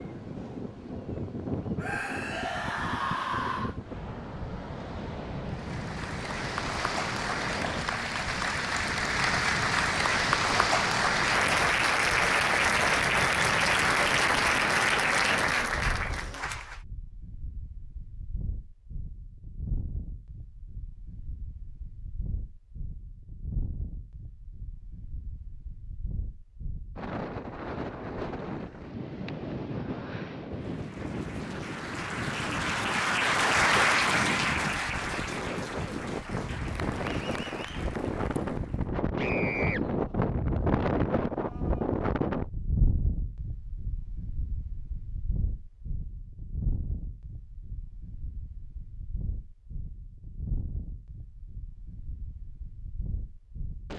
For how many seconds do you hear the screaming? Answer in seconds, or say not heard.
3 s.